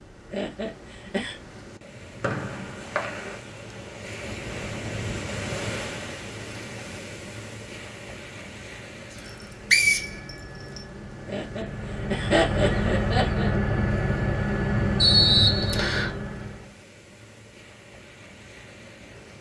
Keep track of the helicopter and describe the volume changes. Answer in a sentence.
The loudness of the helicopter goes up.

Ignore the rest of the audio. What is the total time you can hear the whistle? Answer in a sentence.
The whistle can be heard for 4 seconds in total.